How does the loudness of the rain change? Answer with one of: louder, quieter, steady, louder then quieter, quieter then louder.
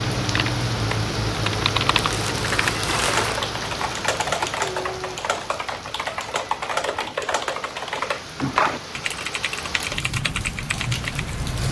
quieter then louder.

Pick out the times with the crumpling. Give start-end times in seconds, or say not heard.
2.0-3.4.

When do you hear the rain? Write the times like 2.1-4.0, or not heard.
0.0-11.6.